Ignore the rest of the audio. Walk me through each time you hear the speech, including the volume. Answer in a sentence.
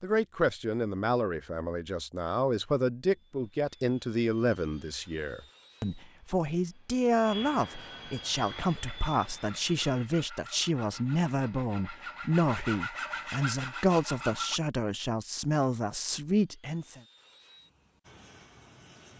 You can hear the speech from 0.0 to 17.0 s, at a steady volume.